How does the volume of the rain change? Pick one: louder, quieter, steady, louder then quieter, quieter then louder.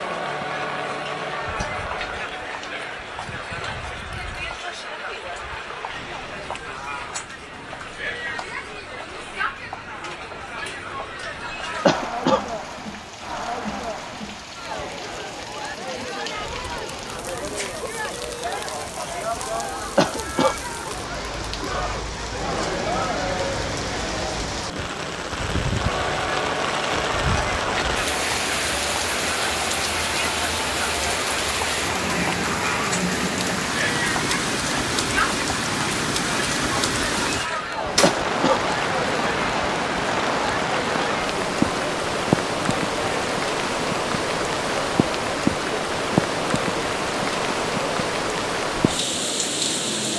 louder.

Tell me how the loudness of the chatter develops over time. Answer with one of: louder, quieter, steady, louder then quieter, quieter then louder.
steady.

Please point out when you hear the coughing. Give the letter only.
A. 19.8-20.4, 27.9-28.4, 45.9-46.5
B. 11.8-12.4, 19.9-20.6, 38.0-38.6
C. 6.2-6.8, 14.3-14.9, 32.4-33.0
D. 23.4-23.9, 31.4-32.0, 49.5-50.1
B.